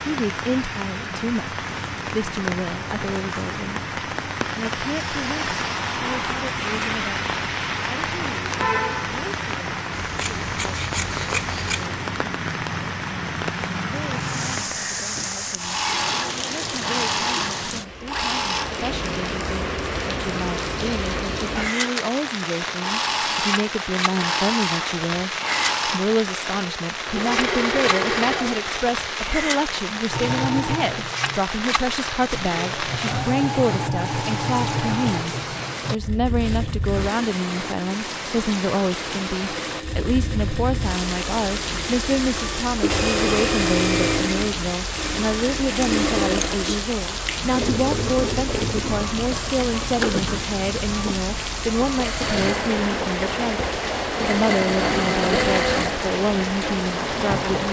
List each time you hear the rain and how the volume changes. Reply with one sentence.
You can hear the rain from 0.0 to 57.6 s, at a steady volume.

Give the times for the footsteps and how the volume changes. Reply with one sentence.
The footsteps can't be heard in this clip.